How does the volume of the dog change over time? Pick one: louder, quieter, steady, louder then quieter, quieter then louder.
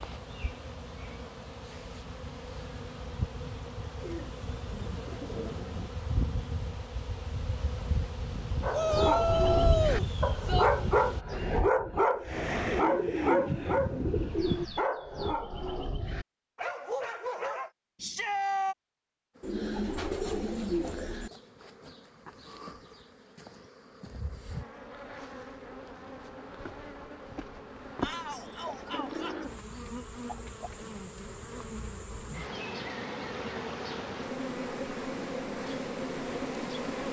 quieter.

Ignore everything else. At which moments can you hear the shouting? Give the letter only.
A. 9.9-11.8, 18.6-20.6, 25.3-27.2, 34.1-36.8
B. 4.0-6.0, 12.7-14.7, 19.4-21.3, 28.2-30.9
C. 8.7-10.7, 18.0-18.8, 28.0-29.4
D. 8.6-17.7
C.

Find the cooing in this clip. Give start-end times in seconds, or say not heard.
4.0-6.0, 12.7-14.7, 19.4-21.3, 28.2-30.9.